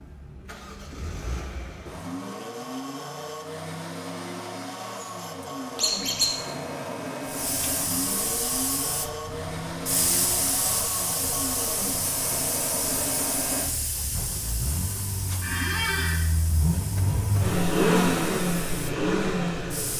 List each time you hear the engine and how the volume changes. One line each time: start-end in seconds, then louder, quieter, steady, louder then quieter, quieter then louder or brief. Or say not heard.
0.0-19.9 louder.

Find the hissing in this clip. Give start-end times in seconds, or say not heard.
7.2-19.9.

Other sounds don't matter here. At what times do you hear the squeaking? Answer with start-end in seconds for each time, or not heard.
5.8-6.3, 15.4-16.2.